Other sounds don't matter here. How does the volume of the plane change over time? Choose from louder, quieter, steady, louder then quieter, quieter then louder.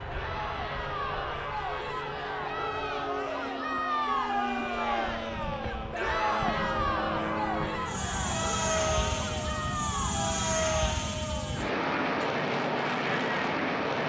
louder.